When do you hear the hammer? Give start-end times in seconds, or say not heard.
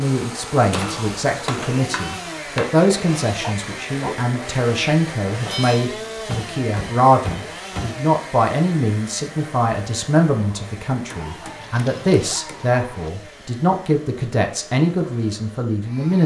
0.7-2.7, 5.5-8.0, 11.1-12.8.